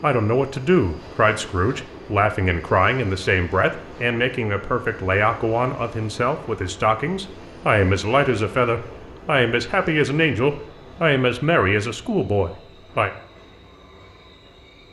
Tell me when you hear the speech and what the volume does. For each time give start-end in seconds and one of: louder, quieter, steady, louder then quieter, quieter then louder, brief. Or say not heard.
0.0-13.1 steady.